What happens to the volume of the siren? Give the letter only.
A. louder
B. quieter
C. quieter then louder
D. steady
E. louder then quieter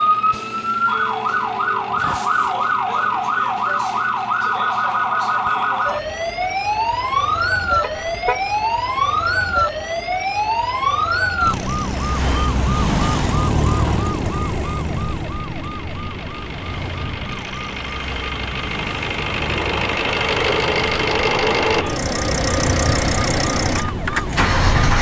B.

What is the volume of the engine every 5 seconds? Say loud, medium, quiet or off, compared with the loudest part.
quiet, quiet, quiet, medium, loud.